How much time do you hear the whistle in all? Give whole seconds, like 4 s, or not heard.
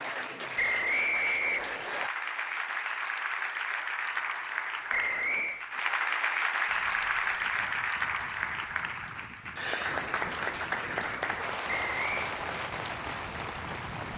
3 s.